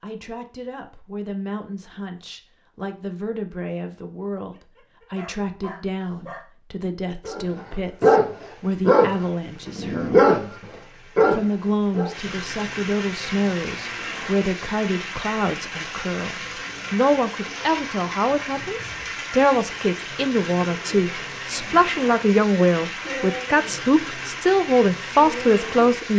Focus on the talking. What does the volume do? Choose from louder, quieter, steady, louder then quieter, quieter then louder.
louder.